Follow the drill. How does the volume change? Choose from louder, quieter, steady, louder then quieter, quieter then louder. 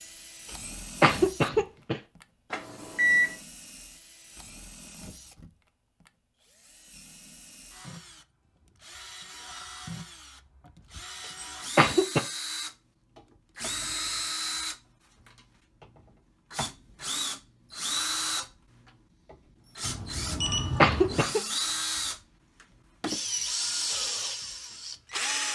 louder.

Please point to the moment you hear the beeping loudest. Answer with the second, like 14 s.
3 s.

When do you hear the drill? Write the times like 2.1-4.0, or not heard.
0.0-25.4.